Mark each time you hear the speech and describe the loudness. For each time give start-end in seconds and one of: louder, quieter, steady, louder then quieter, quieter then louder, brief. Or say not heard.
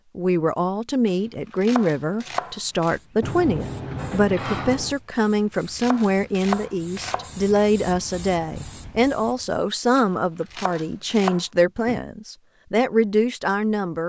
0.1-14.0 steady.